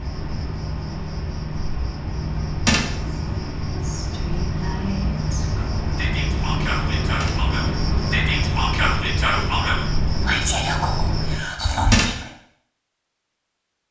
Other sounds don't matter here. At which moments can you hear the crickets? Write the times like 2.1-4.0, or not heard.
0.0-11.4.